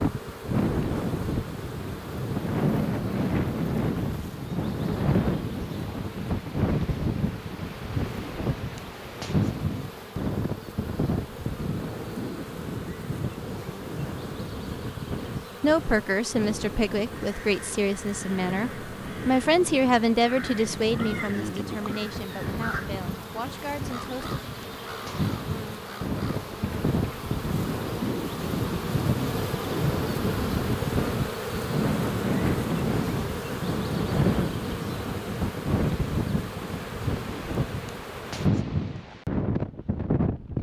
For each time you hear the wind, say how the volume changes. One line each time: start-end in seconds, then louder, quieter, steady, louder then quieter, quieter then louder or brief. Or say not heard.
0.0-40.5 quieter then louder.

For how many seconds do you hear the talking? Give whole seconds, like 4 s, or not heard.
9 s.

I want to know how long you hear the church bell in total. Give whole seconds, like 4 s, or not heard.
not heard.